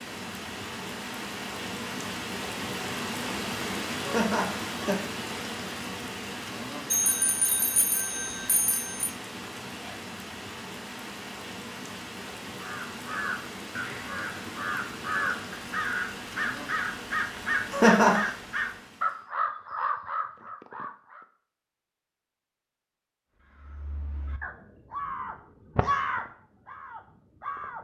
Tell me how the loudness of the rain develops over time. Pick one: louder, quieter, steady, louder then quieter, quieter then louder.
quieter.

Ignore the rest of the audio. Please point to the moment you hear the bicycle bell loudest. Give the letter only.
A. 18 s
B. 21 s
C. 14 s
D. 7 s
D.